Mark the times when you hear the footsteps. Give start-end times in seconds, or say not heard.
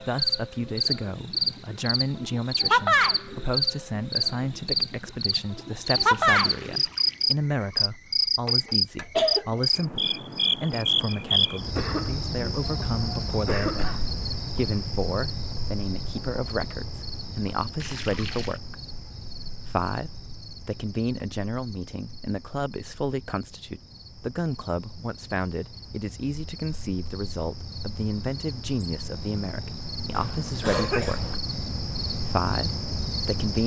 not heard.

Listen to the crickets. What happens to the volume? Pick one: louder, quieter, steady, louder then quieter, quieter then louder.
quieter then louder.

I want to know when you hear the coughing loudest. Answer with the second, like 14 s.
9 s.